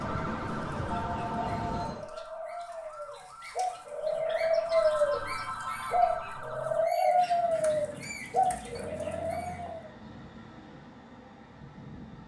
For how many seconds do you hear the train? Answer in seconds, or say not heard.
7 s.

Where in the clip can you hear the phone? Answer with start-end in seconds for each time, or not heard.
0.9-1.9, 4.7-6.0, 8.8-9.8.